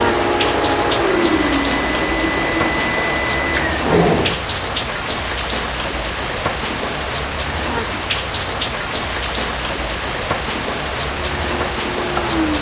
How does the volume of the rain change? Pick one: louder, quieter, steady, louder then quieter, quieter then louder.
steady.